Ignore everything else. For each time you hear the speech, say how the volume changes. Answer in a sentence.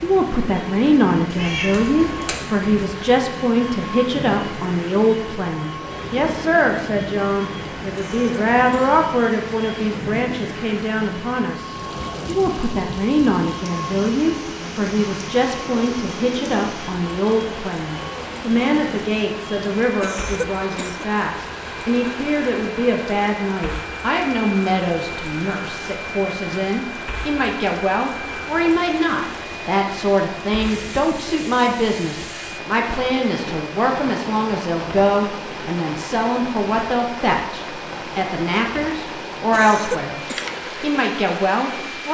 The speech can be heard from 0.0 to 40.2 s, at a steady volume; and briefly from 40.8 to 42.0 s.